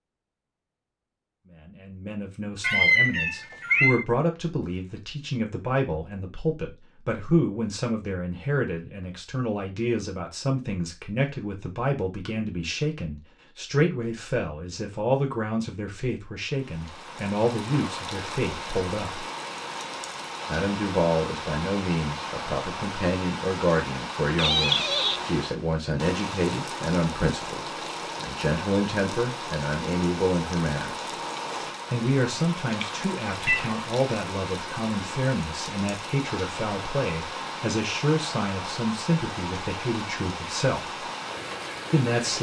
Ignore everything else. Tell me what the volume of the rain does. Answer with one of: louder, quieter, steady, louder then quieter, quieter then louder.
steady.